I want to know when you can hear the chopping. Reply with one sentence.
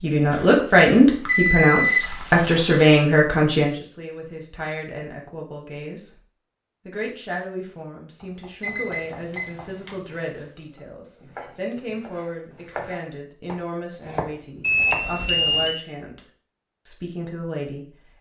The chopping can be heard from 8.2 to 15.7 s.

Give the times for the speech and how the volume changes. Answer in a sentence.
The speech can be heard from 0.0 to 6.2 s, getting quieter; from 6.8 to 16.2 s, at a steady volume; and briefly from 16.9 to 18.1 s.